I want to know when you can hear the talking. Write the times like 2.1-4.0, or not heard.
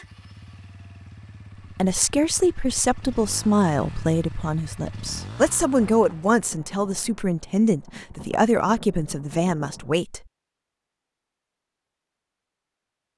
1.8-10.2.